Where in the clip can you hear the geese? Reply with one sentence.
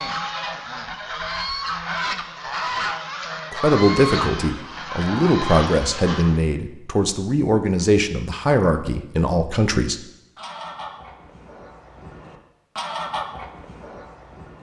You can hear the geese from 0.0 to 6.4 s and from 10.3 to 14.5 s.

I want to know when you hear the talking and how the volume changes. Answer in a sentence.
The talking can be heard from 3.5 to 10.1 s, at a steady volume.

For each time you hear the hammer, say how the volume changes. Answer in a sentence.
You can't hear the hammer here.